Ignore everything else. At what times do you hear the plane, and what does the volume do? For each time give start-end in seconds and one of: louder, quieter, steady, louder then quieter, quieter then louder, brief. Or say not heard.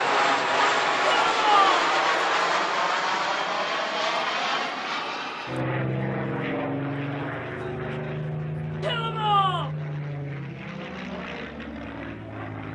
0.0-12.6 quieter.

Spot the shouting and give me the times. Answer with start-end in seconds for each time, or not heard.
1.0-1.9, 8.8-9.7.